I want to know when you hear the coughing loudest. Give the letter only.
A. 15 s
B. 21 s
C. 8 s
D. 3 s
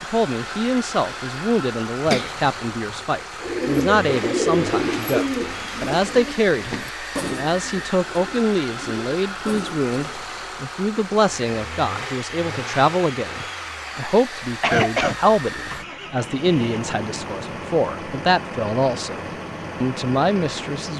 A.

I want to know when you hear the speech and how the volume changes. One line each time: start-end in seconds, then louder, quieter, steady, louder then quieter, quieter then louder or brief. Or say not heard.
0.1-20.9 steady.